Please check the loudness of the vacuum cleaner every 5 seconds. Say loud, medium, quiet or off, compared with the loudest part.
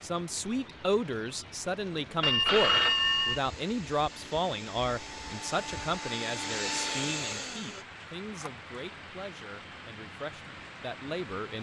medium, loud, off.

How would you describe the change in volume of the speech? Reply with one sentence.
The volume of the speech goes down.